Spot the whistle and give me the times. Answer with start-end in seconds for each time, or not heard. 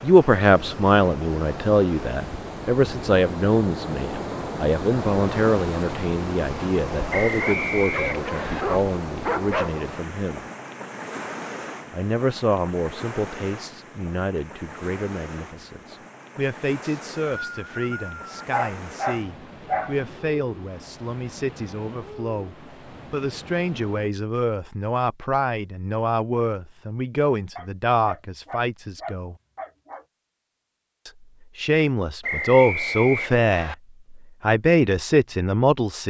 7.1-8.7, 16.8-18.4, 32.2-33.8.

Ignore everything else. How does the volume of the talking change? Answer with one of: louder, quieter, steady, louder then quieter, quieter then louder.
quieter then louder.